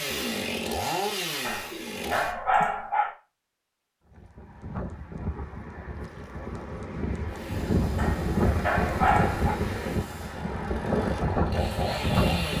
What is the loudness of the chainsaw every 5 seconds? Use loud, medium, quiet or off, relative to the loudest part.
loud, quiet, loud.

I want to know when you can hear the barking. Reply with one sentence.
The barking can be heard from 1.4 to 3.1 s and from 8.0 to 9.6 s.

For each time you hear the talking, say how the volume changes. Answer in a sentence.
You can't hear the talking here.